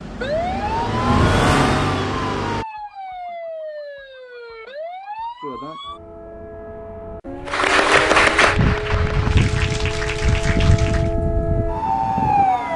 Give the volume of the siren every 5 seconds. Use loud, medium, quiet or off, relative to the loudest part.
medium, medium, loud.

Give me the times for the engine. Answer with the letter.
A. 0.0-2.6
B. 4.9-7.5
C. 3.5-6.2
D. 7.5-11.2
A.